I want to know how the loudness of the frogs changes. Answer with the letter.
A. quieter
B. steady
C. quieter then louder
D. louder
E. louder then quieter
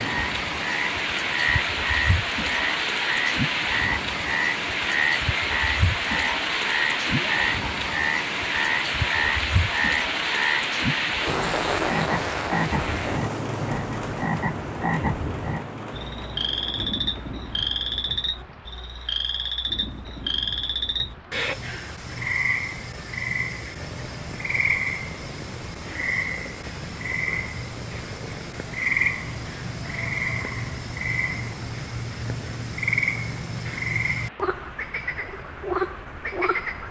B.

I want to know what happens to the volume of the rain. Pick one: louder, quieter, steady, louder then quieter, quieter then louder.
quieter.